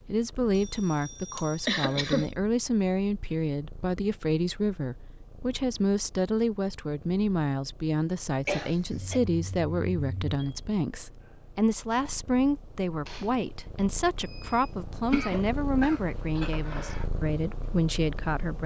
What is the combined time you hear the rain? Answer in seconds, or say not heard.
not heard.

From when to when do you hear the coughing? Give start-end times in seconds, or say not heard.
1.4-2.3, 8.4-9.2, 15.1-17.1.